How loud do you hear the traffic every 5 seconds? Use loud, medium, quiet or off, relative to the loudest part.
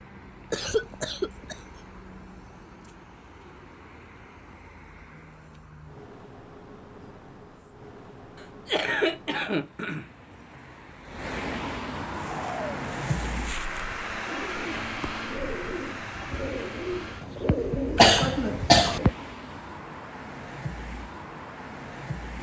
quiet, quiet, loud, medium, medium.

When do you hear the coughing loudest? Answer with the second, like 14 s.
18 s.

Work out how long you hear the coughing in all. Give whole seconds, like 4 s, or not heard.
4 s.